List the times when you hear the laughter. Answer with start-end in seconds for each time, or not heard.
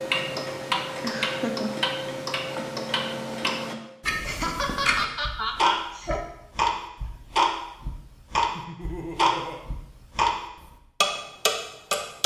1.0-1.8, 4.2-6.2, 8.6-9.7.